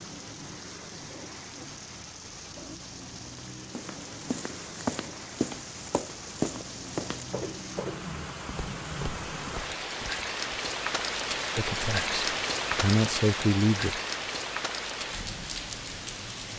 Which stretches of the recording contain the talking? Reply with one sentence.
The talking can be heard from 11.6 to 14.0 s.